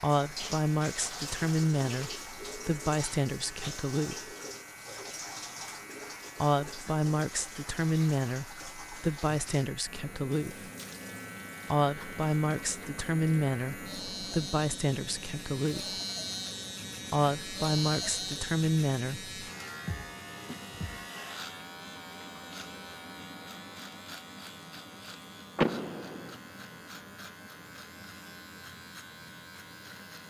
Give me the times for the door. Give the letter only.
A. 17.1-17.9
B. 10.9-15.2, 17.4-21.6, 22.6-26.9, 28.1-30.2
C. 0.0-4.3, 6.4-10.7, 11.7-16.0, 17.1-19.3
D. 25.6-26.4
D.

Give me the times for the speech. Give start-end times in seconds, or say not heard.
0.0-4.3, 6.4-10.7, 11.7-16.0, 17.1-19.3.